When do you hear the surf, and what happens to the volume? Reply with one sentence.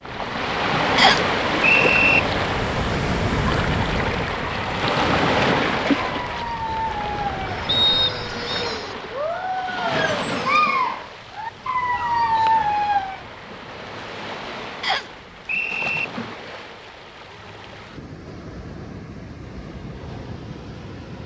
The surf can be heard from 0.0 to 21.2 s, getting quieter.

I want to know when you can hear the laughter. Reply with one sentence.
You can't hear the laughter here.